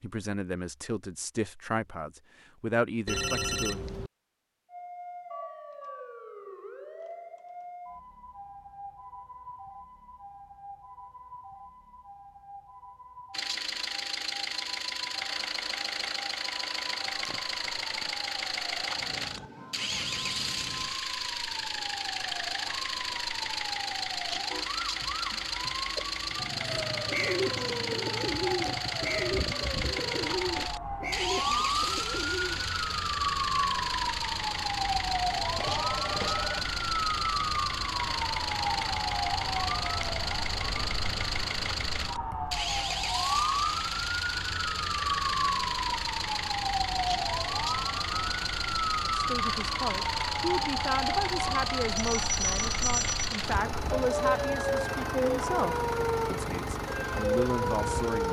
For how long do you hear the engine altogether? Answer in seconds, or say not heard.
45 s.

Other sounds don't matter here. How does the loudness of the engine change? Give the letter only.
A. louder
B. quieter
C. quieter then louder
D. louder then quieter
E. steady
E.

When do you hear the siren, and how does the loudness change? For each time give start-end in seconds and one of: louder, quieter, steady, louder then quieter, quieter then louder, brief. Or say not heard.
4.7-58.2 louder.